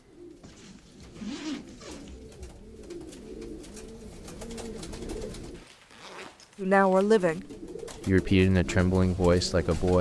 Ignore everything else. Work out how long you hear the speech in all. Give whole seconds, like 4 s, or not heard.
3 s.